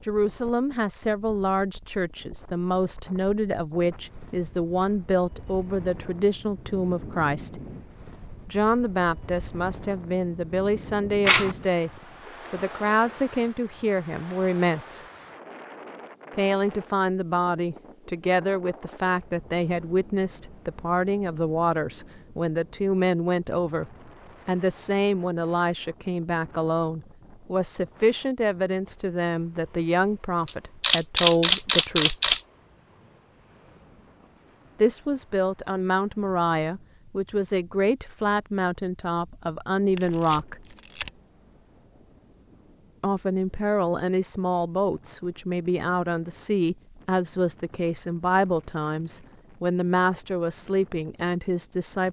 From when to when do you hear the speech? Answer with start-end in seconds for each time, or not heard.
0.0-7.6, 8.4-11.9, 12.5-15.1, 16.3-32.4, 34.8-40.6, 43.0-52.0.